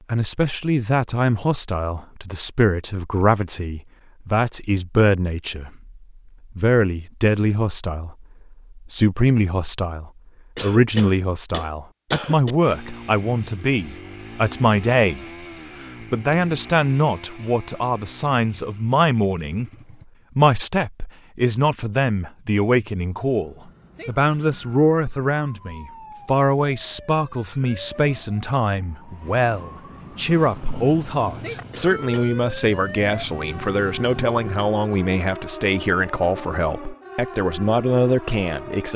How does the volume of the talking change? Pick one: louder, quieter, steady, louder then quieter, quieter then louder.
steady.